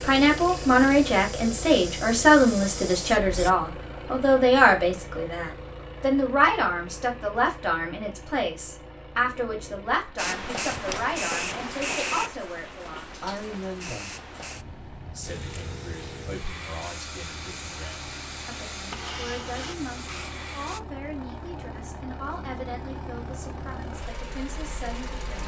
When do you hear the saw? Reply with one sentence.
The saw can't be heard in this clip.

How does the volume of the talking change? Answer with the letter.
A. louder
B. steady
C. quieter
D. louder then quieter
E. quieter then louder
C.